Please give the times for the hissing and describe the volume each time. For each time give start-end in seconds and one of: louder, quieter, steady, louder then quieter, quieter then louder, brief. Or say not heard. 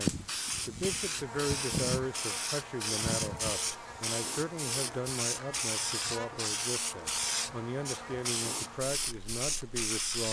0.0-10.2 steady.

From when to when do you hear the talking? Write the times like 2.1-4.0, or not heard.
0.0-10.2.